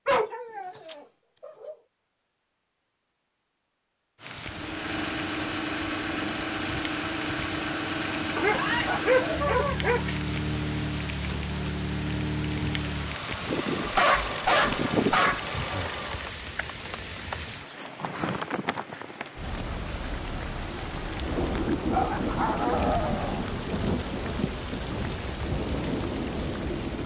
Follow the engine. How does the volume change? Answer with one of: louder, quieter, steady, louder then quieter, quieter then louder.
steady.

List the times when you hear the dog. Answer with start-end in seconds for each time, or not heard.
0.1-1.8, 8.3-10.2, 13.8-15.4, 21.8-23.4.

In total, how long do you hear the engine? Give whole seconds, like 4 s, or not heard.
12 s.